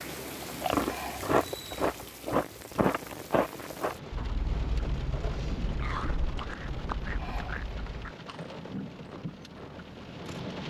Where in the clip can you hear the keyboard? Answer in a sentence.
You can't hear the keyboard here.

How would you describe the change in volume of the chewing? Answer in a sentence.
The volume of the chewing goes down.